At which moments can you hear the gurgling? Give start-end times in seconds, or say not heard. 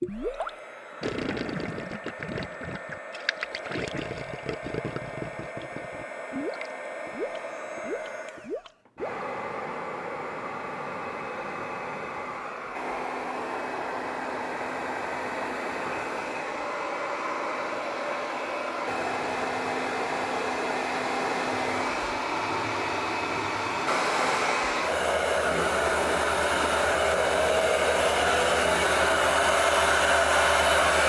0.0-9.2.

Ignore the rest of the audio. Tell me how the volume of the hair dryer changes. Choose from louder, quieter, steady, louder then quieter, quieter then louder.
louder.